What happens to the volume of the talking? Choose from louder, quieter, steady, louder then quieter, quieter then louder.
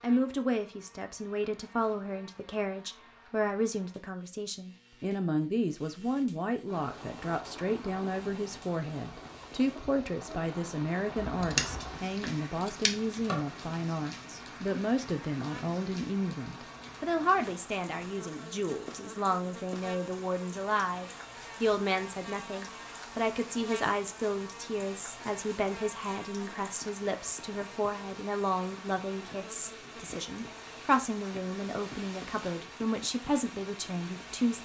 steady.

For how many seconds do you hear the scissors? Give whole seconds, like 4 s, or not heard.
2 s.